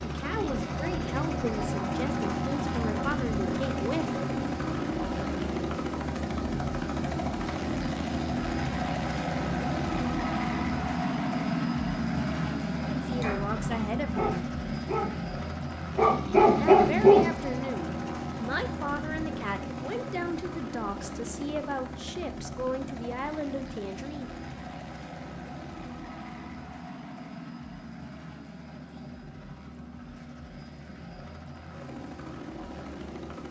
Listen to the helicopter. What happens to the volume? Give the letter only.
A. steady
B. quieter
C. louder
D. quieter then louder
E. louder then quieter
B.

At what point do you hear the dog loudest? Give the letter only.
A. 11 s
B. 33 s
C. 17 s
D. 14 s
C.